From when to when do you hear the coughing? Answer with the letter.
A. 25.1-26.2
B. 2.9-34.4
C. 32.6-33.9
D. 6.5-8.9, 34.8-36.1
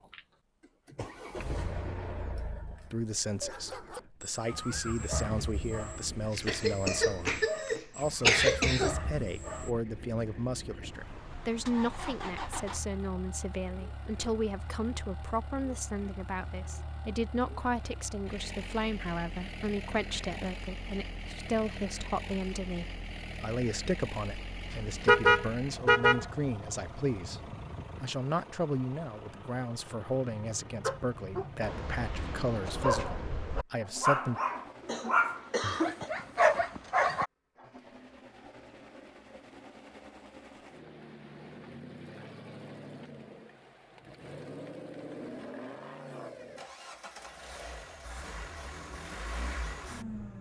D.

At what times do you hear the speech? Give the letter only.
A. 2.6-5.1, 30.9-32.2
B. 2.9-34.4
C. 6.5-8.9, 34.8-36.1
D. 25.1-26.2
B.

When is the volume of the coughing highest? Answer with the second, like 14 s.
8 s.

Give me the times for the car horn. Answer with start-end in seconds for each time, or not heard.
25.1-26.2.